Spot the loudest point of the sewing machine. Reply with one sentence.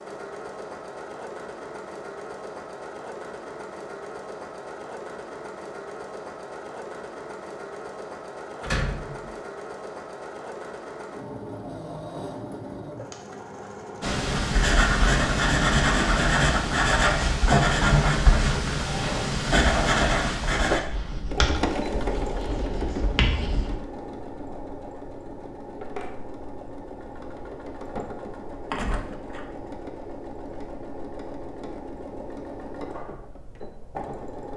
The volume of the sewing machine peaks at 22 seconds.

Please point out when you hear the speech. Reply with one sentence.
You can't hear the speech here.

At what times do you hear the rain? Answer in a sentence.
The rain can't be heard in this clip.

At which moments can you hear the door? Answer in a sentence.
You can hear the door from 8.6 to 9.3 s and from 28.7 to 29.4 s.